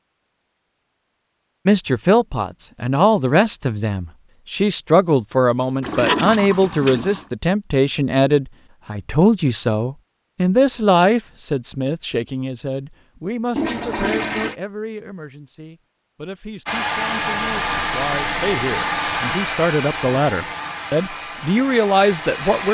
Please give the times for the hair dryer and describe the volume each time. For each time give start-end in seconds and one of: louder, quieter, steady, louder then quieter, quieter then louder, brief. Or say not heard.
16.6-22.7 quieter.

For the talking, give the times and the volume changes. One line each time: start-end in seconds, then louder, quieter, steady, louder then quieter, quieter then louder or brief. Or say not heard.
1.6-22.7 quieter then louder.